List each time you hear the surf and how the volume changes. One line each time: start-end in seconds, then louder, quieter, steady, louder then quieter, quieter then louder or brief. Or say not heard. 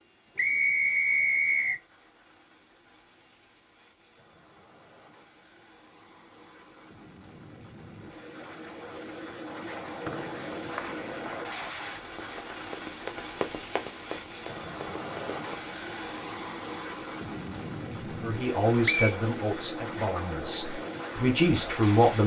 not heard.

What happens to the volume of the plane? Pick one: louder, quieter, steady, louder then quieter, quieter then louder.
louder.